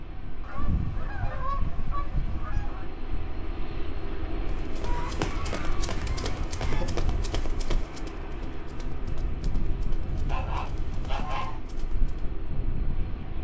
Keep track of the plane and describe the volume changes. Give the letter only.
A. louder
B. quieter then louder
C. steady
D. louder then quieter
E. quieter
C.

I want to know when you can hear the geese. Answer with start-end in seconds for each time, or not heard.
0.4-2.9, 4.8-6.8, 10.1-11.6.